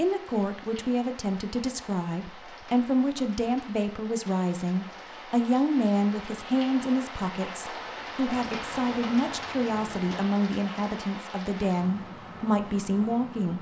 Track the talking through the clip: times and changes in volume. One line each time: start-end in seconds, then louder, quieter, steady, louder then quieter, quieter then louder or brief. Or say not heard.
0.0-13.5 steady.